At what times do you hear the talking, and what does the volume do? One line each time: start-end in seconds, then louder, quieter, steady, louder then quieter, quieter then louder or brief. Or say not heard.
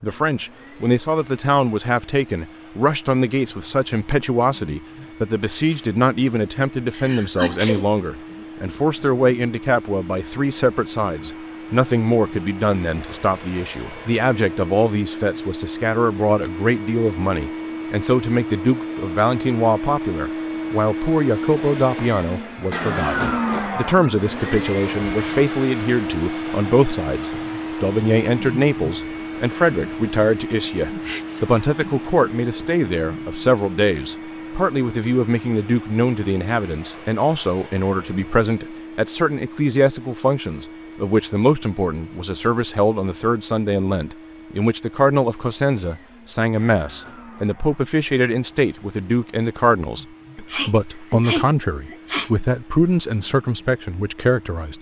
0.0-54.7 steady.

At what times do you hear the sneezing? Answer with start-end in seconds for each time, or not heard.
6.9-7.9, 30.9-31.4, 50.4-52.3.